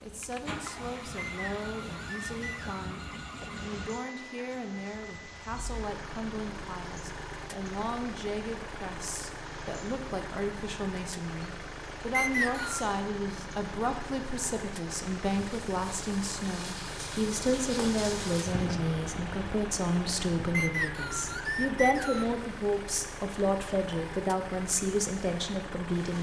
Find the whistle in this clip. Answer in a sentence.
You can hear the whistle from 1.1 to 2.9 s, from 12.1 to 12.8 s and from 20.5 to 22.4 s.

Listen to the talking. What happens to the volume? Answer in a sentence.
The volume of the talking goes up.